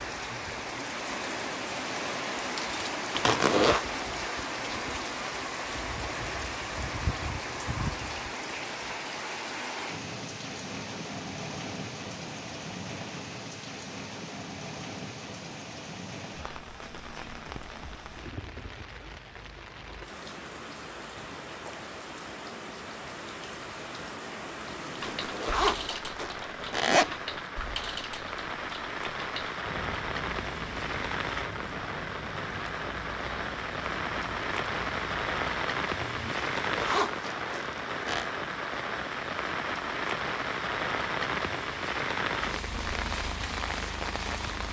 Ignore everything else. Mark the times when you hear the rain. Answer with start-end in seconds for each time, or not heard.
0.0-44.6.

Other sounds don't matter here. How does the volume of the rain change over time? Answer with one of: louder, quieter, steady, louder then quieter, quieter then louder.
quieter then louder.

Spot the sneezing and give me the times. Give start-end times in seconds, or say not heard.
not heard.